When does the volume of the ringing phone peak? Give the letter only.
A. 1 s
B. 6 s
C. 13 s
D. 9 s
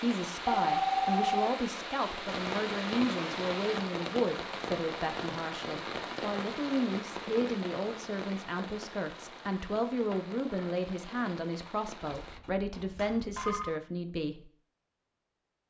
A.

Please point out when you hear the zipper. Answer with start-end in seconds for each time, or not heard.
not heard.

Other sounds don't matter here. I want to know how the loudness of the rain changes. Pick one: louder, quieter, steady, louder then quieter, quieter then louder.
quieter.